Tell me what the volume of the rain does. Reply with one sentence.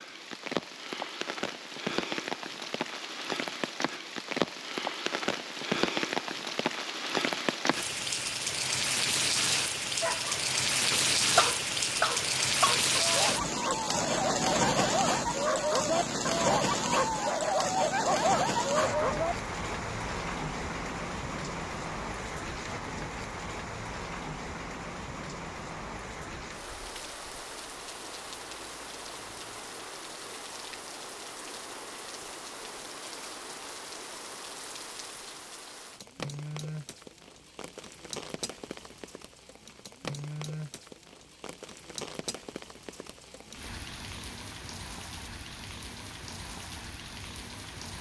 The loudness of the rain goes down.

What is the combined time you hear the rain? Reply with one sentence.
The rain can be heard for 48 seconds in total.